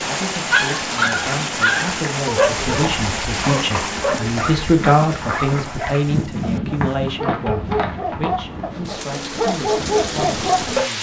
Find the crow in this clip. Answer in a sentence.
The crow can't be heard in this clip.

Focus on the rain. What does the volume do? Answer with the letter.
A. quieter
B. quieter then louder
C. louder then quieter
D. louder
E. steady
B.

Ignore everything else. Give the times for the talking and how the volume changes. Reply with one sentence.
The talking can be heard from 0.0 to 10.9 s, getting louder then quieter.